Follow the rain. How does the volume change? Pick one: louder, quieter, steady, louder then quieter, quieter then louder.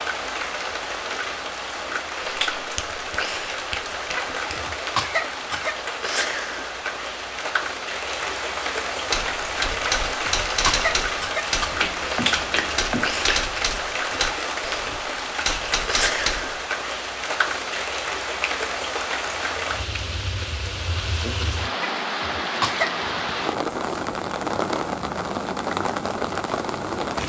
steady.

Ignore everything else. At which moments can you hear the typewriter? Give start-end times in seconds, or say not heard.
9.1-16.6.